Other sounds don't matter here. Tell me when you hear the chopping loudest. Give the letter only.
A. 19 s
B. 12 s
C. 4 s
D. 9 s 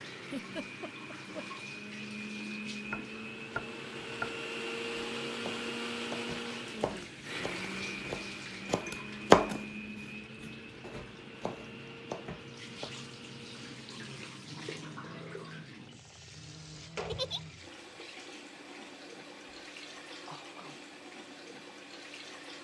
D.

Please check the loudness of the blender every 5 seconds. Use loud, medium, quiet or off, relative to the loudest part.
loud, loud, medium, quiet, quiet.